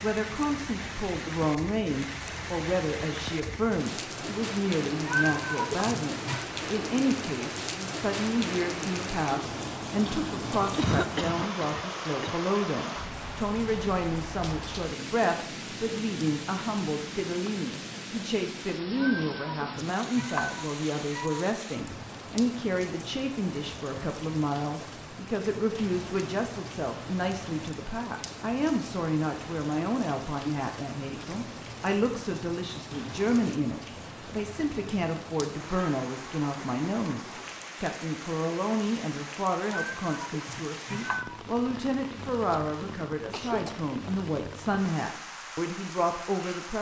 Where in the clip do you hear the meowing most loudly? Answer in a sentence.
The volume of the meowing peaks at 5 seconds.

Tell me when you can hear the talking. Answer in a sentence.
The talking can be heard from 0.0 to 46.7 s.